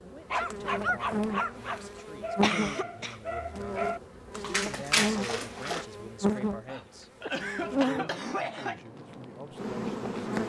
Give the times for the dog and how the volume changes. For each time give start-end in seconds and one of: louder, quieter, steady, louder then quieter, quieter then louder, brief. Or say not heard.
0.3-5.8 quieter then louder.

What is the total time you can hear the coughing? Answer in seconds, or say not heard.
3 s.